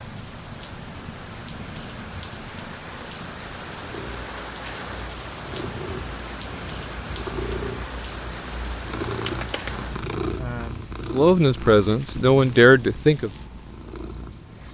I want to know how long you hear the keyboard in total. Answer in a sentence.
You can't hear the keyboard here.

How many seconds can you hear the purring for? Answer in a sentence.
The purring can be heard for 15 seconds in total.